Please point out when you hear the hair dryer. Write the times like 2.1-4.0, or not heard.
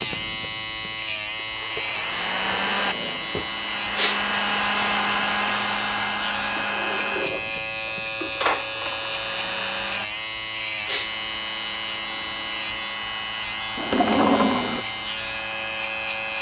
0.0-16.3.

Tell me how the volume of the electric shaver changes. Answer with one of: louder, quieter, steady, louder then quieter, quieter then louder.
steady.